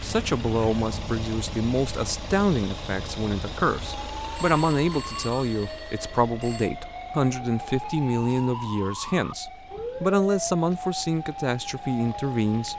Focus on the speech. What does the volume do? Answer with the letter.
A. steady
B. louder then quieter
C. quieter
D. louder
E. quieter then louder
A.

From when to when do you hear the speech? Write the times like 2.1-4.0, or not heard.
0.0-12.7.